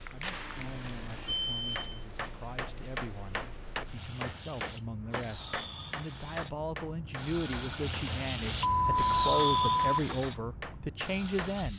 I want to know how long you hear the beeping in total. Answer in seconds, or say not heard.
3 s.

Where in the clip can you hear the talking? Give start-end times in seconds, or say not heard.
0.1-11.7.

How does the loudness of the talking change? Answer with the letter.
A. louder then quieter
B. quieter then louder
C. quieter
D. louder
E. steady
D.